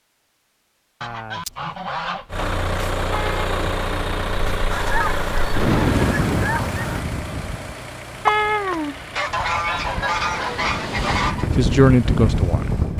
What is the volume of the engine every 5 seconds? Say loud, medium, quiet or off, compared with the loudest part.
loud, medium, quiet.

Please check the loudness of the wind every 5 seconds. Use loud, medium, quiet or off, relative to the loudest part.
off, loud, loud.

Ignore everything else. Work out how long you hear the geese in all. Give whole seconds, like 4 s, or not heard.
6 s.